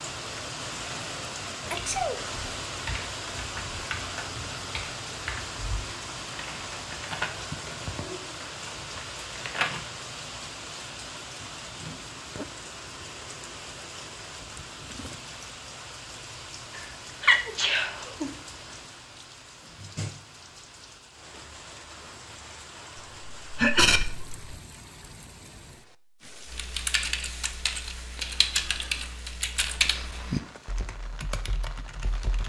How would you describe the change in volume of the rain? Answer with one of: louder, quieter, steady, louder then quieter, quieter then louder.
quieter.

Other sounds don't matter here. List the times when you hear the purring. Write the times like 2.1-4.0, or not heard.
not heard.